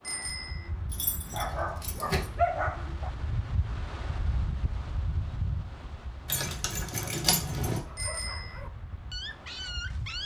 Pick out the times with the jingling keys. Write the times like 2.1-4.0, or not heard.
0.9-2.3, 6.2-7.8.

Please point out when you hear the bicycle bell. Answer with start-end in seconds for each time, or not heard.
0.0-0.7, 8.0-8.6.